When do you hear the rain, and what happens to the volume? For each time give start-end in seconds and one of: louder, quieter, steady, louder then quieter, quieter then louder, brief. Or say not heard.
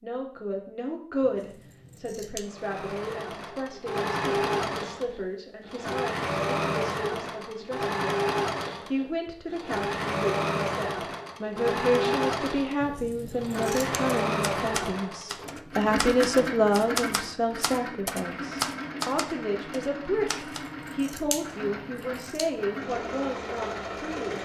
not heard.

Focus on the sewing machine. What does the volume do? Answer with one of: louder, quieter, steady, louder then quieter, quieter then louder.
quieter.